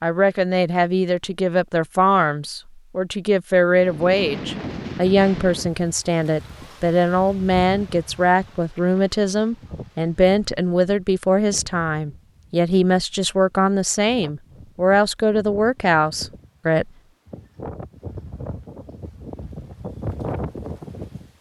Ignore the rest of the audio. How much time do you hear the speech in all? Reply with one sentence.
You can hear the speech for 17 seconds altogether.